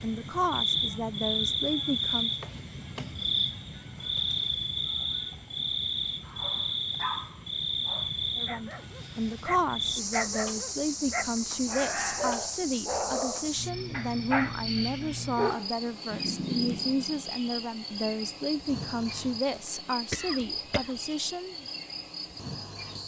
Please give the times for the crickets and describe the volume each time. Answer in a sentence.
You can hear the crickets from 0.0 to 23.0 s, getting quieter.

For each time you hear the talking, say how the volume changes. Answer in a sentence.
You can hear the talking briefly from 0.0 to 2.3 s; and from 8.3 to 21.6 s, at a steady volume.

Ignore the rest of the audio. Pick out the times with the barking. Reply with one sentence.
You can hear the barking from 6.2 to 17.2 s.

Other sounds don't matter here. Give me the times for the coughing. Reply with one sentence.
You can hear the coughing from 20.1 to 21.0 s.